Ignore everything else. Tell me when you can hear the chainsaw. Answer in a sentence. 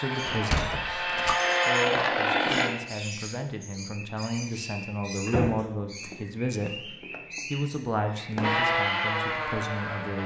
The chainsaw can be heard from 0.0 to 2.7 s and from 8.4 to 10.2 s.